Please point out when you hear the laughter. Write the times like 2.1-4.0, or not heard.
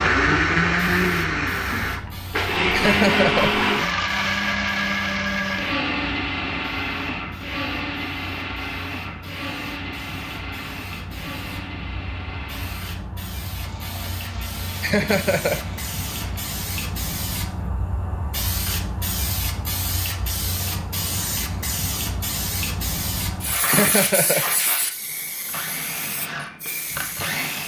2.7-3.5, 14.8-15.6, 23.6-24.4.